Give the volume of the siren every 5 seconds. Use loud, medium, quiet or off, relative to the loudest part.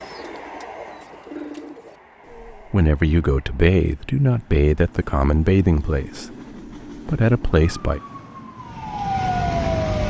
off, loud.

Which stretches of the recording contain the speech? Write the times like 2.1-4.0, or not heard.
2.5-6.2, 7.0-8.0.